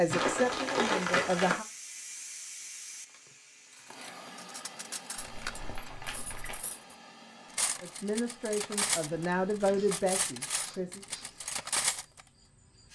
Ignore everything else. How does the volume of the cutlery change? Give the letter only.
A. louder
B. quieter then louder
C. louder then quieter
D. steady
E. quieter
B.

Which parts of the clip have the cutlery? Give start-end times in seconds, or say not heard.
3.7-12.2.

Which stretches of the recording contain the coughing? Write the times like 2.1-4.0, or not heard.
not heard.